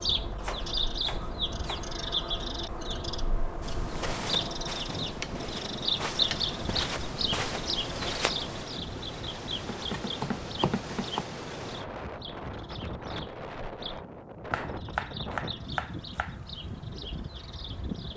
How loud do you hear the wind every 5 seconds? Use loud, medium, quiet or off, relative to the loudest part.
medium, loud, loud, loud.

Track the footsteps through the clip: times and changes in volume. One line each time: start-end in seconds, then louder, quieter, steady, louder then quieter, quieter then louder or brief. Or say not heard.
3.6-8.7 quieter then louder.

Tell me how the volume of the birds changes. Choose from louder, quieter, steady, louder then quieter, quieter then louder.
quieter.